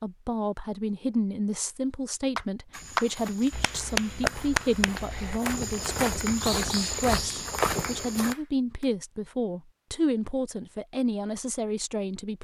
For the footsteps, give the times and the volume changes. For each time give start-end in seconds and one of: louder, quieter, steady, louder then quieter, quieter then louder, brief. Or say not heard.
2.7-8.3 louder.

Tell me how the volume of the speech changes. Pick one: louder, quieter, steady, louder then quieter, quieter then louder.
steady.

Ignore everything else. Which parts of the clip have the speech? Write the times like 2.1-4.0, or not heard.
0.0-12.3.